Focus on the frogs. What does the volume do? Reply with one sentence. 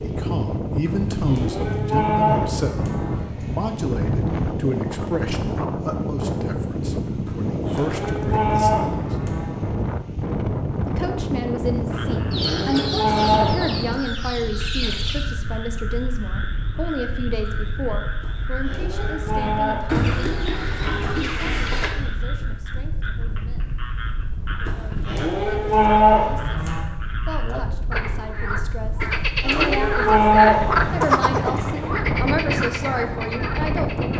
The volume of the frogs goes up.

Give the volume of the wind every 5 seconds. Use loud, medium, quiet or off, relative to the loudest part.
loud, loud, loud, medium, medium, medium, loud.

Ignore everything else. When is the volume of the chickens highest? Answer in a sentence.
The loudest moment of the chickens is at 20 seconds.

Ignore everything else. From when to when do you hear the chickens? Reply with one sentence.
You can hear the chickens from 12.3 to 15.3 s and from 19.9 to 21.9 s.